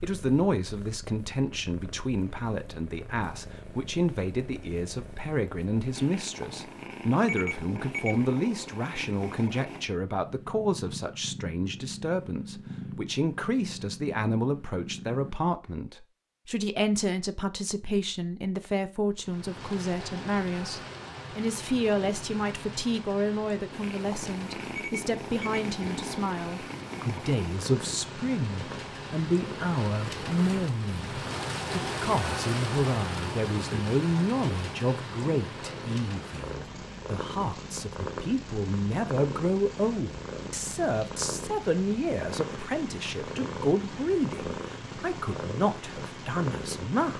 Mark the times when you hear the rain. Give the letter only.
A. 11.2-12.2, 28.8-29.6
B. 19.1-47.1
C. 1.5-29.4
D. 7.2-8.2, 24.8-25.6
B.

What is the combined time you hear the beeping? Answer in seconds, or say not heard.
2 s.